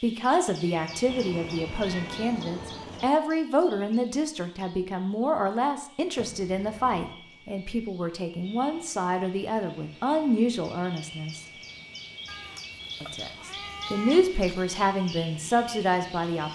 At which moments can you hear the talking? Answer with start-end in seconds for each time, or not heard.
0.0-11.4, 13.0-16.4.